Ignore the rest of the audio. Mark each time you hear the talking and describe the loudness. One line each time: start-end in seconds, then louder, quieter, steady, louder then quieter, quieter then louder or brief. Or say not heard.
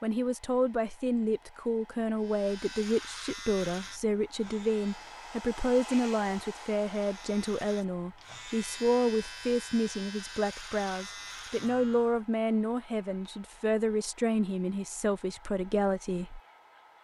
0.0-16.4 steady.